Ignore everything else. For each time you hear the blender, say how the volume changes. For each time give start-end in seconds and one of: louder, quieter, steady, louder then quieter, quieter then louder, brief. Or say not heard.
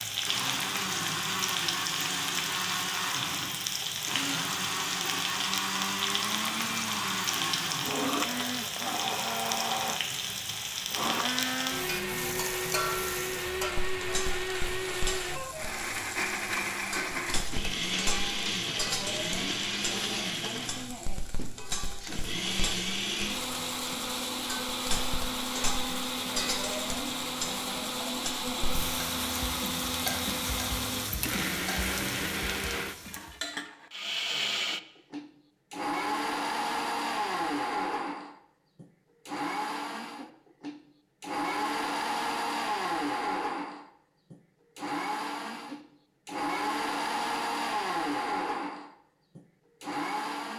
0.2-50.5 steady.